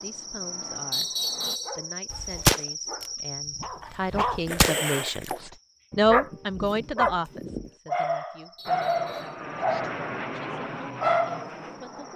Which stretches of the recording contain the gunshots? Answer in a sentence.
You can hear the gunshots from 2.1 to 3.0 s and from 4.1 to 5.3 s.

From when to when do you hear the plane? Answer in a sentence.
You can hear the plane from 0.0 to 1.6 s and from 8.7 to 12.1 s.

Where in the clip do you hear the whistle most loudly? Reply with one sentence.
The volume of the whistle peaks at 1 second.